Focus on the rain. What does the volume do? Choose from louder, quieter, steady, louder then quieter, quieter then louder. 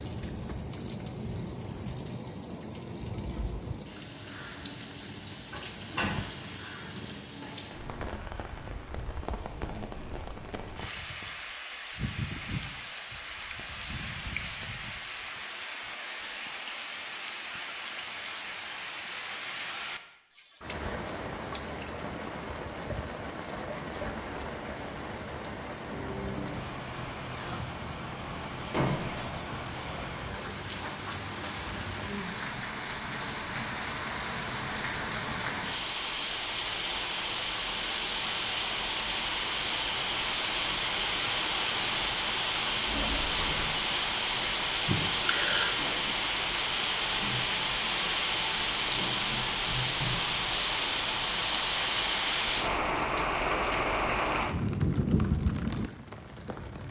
louder.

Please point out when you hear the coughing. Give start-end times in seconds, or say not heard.
44.9-45.8.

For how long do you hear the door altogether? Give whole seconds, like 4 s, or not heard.
2 s.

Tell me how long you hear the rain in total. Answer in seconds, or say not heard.
57 s.